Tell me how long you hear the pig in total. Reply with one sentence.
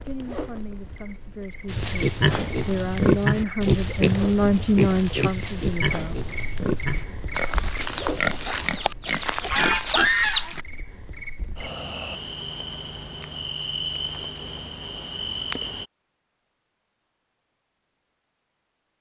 You can hear the pig for 9 seconds altogether.